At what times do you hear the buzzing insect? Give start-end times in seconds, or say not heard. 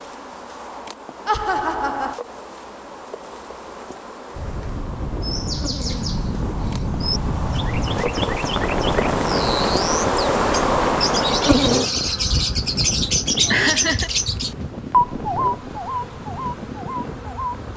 0.0-17.7.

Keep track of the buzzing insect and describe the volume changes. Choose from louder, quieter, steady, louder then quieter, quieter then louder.
louder then quieter.